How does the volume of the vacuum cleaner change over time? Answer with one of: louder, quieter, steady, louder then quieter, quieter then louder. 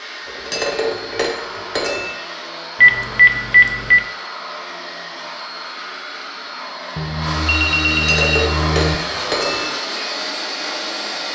louder.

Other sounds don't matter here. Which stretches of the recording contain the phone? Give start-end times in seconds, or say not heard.
2.8-4.0, 7.0-8.9.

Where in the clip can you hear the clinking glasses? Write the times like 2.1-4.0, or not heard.
0.2-2.1, 7.9-9.7.